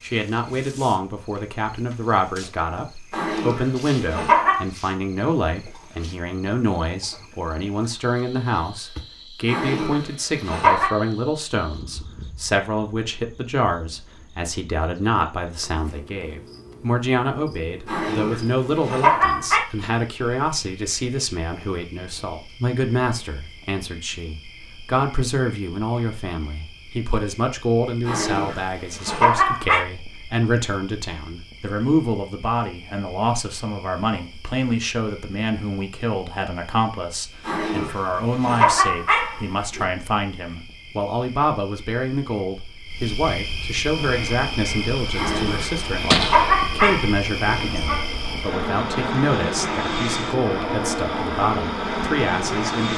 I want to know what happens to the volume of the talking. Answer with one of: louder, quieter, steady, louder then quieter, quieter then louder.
steady.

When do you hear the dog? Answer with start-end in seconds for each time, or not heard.
3.1-4.7, 9.4-10.9, 17.9-19.6, 28.1-29.8, 37.5-39.9, 45.1-48.0.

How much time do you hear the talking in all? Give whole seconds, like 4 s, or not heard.
53 s.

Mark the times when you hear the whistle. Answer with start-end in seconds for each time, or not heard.
not heard.